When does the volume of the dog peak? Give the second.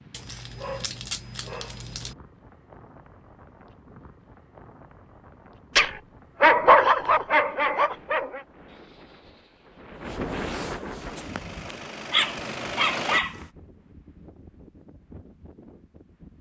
7 s.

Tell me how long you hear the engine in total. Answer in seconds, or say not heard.
2 s.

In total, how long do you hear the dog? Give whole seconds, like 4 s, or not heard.
7 s.